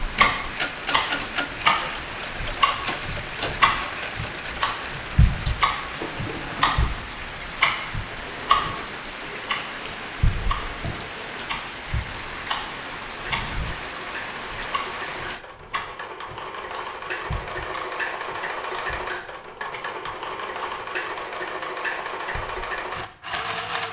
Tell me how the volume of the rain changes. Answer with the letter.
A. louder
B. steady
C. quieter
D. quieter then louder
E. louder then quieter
B.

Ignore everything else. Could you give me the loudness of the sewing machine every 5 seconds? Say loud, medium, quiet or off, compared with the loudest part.
loud, medium, medium, loud, loud.